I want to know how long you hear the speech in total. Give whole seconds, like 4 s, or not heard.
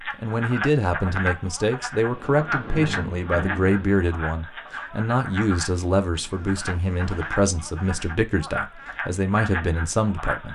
10 s.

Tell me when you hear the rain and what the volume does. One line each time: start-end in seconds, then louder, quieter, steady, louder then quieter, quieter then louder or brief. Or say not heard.
not heard.